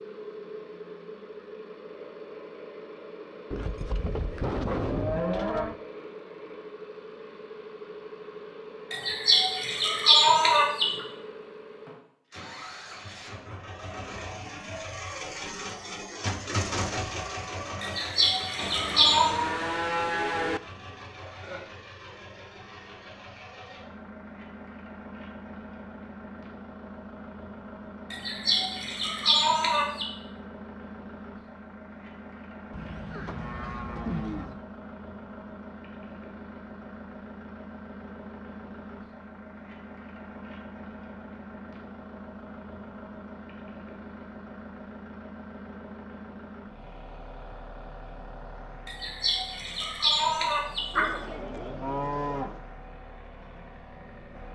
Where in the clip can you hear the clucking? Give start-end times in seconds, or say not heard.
8.9-10.8, 17.8-19.4, 28.1-30.1, 48.9-51.1.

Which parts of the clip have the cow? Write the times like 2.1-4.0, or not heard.
3.5-5.8, 18.6-20.6, 32.7-34.6, 50.9-52.6.